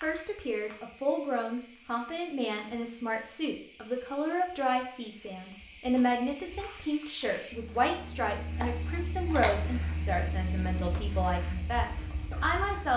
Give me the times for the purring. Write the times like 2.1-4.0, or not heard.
not heard.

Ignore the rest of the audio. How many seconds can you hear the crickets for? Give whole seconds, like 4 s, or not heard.
13 s.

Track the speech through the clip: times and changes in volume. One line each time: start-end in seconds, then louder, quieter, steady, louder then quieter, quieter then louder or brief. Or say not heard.
0.0-12.9 steady.